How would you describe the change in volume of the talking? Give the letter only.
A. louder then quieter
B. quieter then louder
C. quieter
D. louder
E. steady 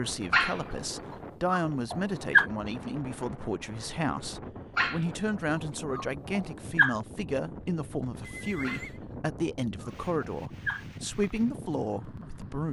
E.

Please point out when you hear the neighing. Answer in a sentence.
You can hear the neighing from 8.2 to 9.0 s.